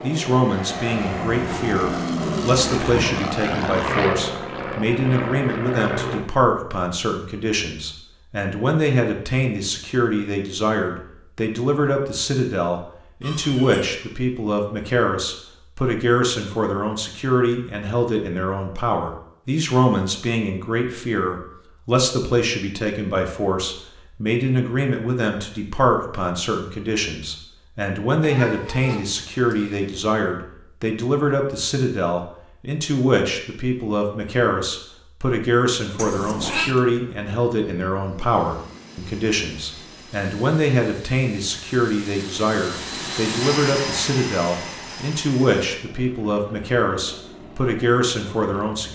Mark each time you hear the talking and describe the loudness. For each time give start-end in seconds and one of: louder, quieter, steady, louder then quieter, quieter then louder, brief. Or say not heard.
0.0-48.9 steady.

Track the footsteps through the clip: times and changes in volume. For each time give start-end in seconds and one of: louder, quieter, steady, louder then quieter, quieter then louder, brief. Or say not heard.
not heard.